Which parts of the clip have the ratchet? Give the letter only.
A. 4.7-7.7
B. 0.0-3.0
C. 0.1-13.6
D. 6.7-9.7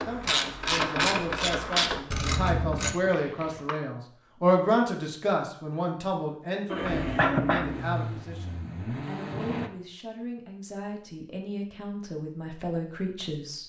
B.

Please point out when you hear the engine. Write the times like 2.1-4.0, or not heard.
6.7-9.7.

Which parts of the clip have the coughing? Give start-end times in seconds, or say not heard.
2.9-3.8, 7.2-7.7.